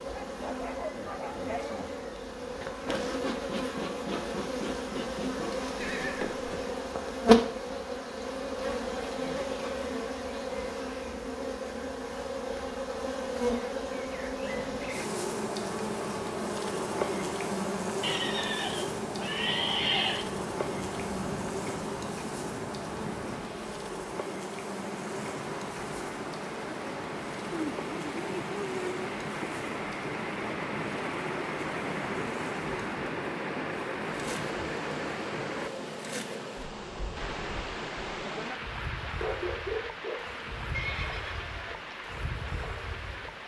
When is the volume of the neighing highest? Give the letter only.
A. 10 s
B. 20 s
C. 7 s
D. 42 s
B.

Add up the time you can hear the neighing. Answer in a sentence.
The neighing can be heard for 4 seconds in total.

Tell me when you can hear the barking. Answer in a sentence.
The barking can be heard from 0.1 to 1.9 s and from 39.1 to 40.3 s.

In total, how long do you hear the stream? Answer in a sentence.
The stream can be heard for 29 seconds in total.